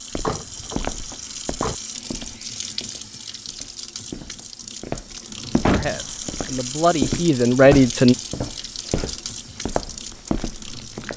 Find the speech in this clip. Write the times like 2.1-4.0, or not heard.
5.7-8.2.